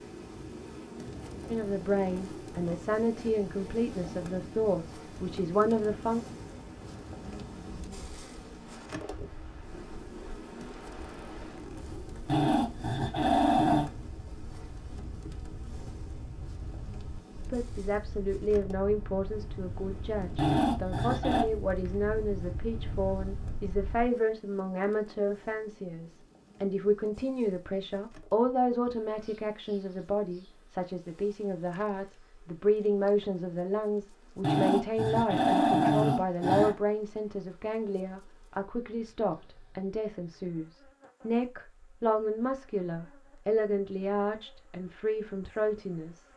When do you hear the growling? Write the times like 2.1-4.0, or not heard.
12.2-13.9, 20.4-21.4, 34.4-36.8.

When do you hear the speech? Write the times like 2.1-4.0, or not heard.
1.4-6.2, 17.4-46.2.